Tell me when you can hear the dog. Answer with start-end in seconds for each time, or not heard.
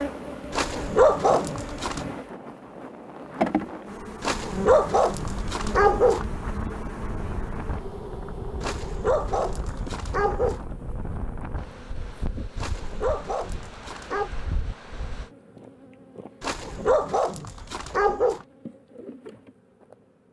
0.5-2.0, 4.2-6.2, 8.6-10.6, 12.6-14.3, 16.4-18.4.